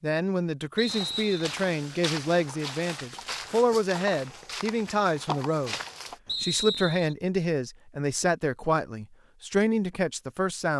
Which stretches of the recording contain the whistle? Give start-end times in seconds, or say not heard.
0.8-1.4, 6.2-7.2.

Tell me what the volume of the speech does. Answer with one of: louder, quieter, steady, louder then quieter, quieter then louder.
steady.